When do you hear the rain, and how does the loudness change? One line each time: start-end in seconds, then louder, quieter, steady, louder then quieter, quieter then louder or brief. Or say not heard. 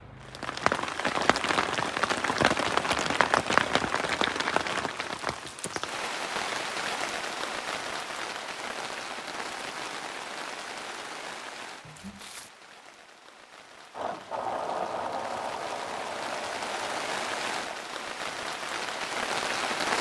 0.0-19.9 quieter then louder.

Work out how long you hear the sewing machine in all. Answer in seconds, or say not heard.
4 s.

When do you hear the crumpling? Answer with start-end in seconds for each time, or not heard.
11.8-12.5.